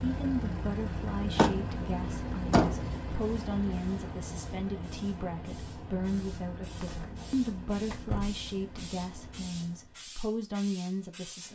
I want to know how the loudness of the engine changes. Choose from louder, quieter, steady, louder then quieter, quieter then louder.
quieter.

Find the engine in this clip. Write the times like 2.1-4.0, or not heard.
0.0-10.0.